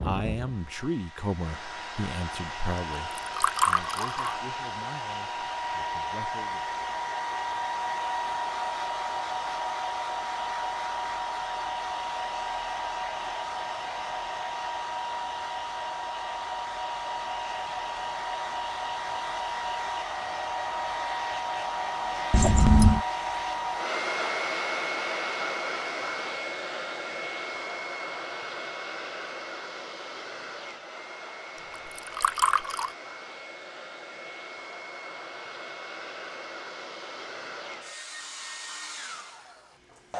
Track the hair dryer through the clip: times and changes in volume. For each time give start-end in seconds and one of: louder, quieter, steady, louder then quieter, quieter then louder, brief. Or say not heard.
0.0-40.1 quieter.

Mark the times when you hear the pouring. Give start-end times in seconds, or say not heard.
3.1-4.3, 22.3-23.0, 31.9-32.9.